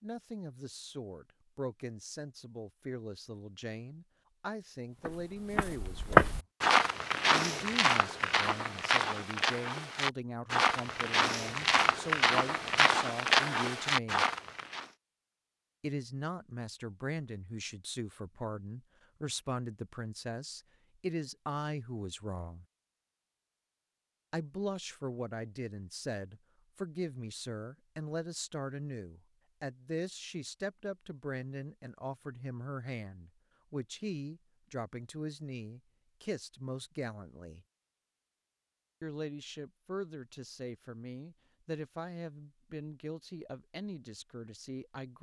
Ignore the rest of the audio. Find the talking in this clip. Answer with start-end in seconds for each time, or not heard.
0.0-6.3, 7.3-14.2, 15.8-22.6, 24.3-37.6, 39.0-45.1.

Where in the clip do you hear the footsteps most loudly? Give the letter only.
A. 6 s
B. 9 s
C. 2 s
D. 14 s
A.